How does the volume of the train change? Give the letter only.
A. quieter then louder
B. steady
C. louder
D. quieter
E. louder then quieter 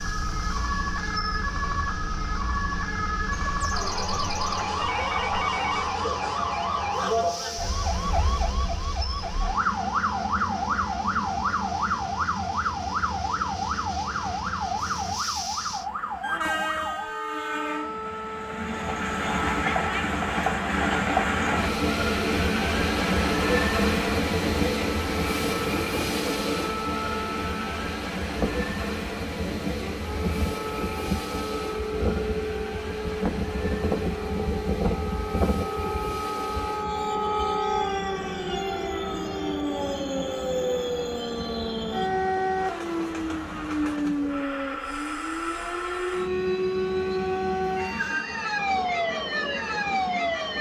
E.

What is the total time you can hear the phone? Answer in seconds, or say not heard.
3 s.